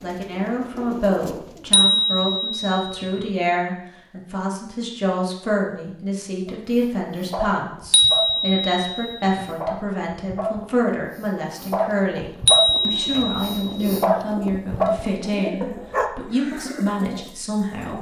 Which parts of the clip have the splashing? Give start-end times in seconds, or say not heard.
not heard.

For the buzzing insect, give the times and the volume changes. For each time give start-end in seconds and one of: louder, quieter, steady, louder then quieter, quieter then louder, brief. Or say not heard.
not heard.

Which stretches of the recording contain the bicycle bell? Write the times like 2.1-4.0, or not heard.
1.7-3.3, 7.9-9.5, 12.4-14.1.